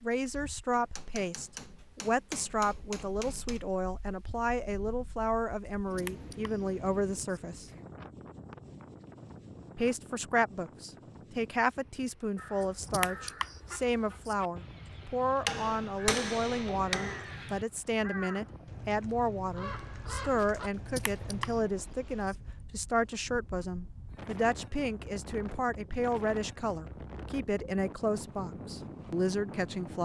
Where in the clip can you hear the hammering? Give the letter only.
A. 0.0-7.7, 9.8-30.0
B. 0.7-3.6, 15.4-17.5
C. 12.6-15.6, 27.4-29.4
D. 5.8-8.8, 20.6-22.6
B.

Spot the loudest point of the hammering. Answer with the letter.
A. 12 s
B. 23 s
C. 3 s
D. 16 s
D.